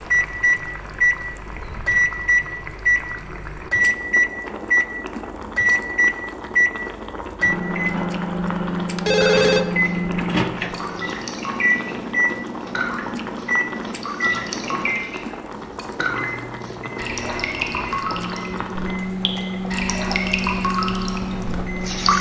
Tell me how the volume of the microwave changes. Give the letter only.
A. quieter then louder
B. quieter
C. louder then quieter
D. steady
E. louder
B.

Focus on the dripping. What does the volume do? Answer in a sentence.
The volume of the dripping goes up.